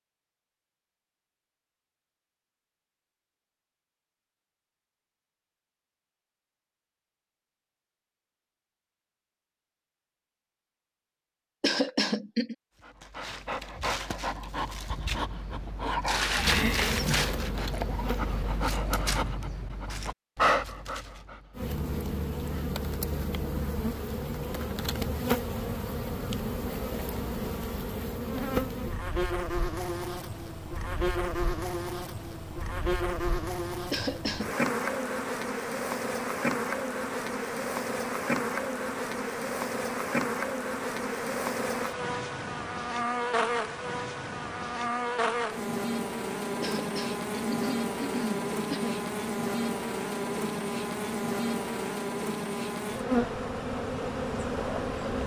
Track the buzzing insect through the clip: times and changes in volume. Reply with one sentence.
The buzzing insect can be heard briefly from 16.4 to 18.6 s; and from 21.6 to 55.2 s, at a steady volume.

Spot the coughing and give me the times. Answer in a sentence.
You can hear the coughing from 11.6 to 12.6 s, from 33.9 to 34.5 s and from 46.6 to 49.0 s.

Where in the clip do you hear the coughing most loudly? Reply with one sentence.
The volume of the coughing peaks at 12 seconds.